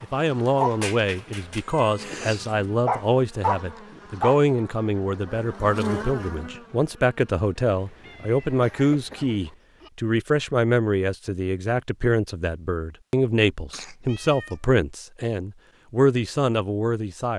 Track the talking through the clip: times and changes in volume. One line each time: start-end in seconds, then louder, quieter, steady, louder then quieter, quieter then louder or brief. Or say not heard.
0.0-17.3 steady.